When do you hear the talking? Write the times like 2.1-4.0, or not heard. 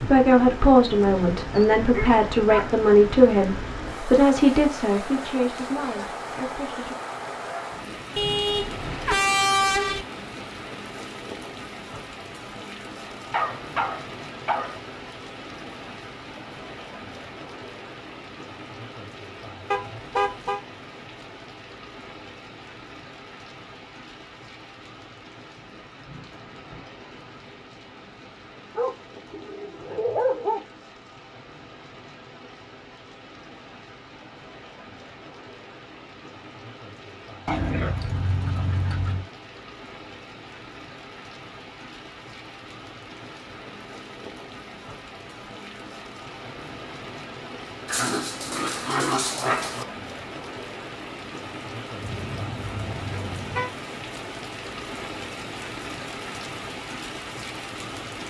0.0-7.0.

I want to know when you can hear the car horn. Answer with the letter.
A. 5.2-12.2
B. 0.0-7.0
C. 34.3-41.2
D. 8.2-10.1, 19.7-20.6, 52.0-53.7
D.